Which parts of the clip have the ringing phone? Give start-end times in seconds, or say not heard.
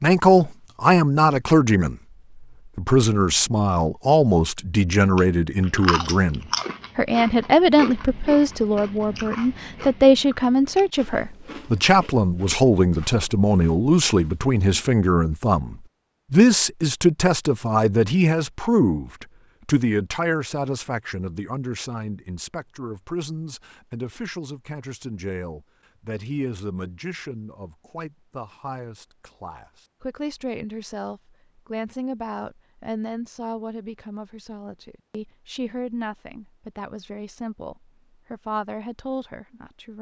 not heard.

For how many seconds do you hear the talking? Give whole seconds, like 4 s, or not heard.
40 s.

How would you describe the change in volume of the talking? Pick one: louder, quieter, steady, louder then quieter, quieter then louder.
quieter.